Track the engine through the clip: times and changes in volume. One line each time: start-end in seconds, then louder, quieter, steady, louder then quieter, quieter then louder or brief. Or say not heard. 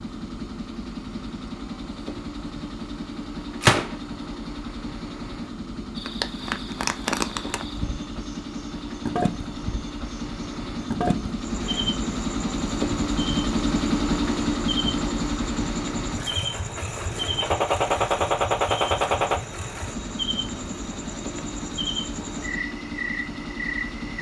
0.0-24.1 louder then quieter.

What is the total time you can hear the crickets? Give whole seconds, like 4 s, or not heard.
18 s.